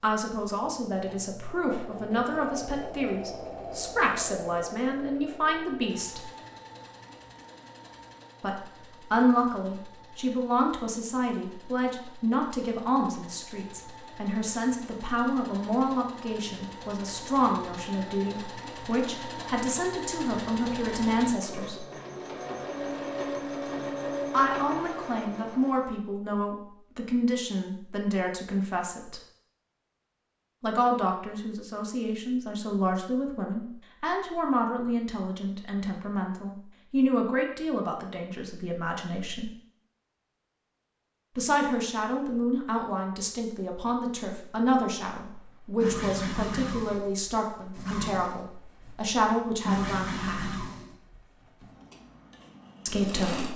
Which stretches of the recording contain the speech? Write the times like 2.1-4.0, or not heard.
0.0-6.3, 8.4-21.9, 24.3-29.2, 30.6-39.5, 41.4-50.5, 52.9-53.5.